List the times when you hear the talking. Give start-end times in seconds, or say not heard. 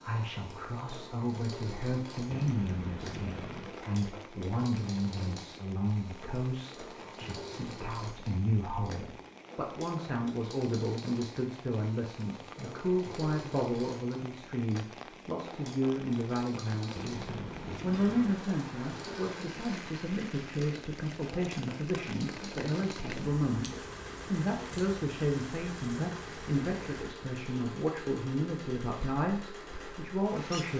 0.0-30.7.